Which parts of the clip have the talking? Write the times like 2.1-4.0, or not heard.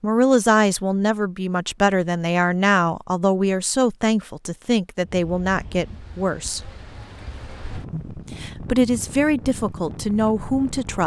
0.0-6.6, 7.9-11.0.